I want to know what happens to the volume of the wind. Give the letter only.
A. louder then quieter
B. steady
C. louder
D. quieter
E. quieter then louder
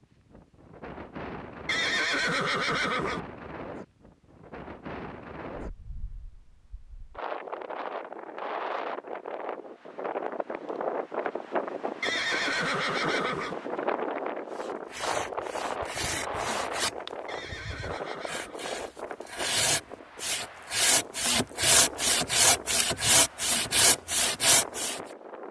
A.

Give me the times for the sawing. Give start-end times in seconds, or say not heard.
14.6-25.0.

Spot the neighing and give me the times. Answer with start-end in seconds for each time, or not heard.
1.6-3.2, 12.0-13.6, 17.2-18.6.